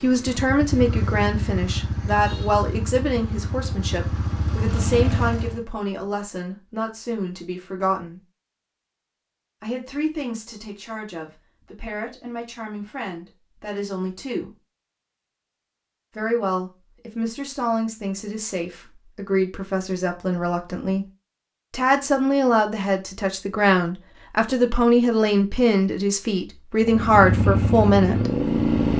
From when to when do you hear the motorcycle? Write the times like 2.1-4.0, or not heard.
0.0-5.7, 26.9-28.9.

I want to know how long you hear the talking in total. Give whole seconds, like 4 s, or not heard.
25 s.